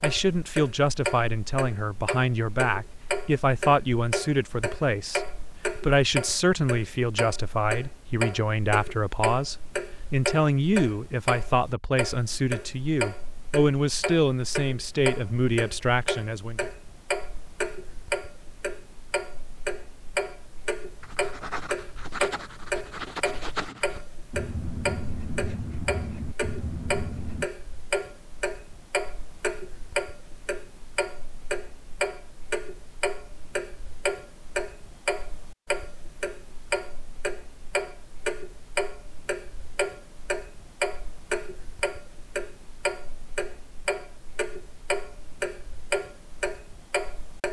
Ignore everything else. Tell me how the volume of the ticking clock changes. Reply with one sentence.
The loudness of the ticking clock stays about the same.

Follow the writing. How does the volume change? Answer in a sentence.
The volume of the writing stays about the same.